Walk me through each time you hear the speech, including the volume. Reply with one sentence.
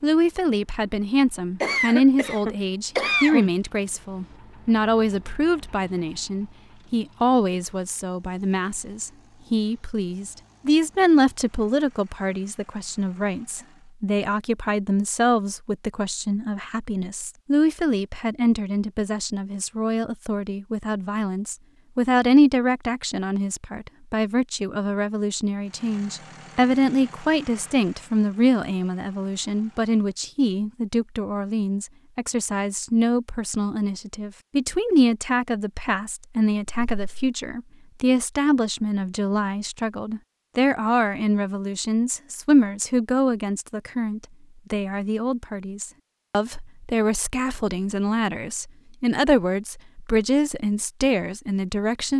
You can hear the speech from 0.0 to 52.1 s, at a steady volume.